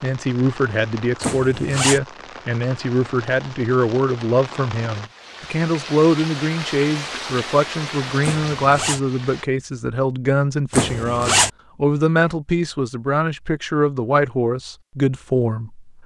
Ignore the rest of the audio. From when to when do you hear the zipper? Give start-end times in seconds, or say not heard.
1.2-2.0, 8.2-9.0, 10.7-11.5.